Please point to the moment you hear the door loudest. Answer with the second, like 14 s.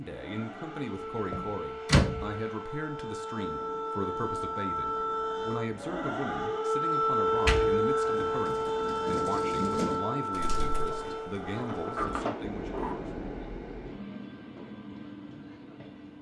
2 s.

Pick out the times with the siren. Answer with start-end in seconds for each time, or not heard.
0.0-12.1.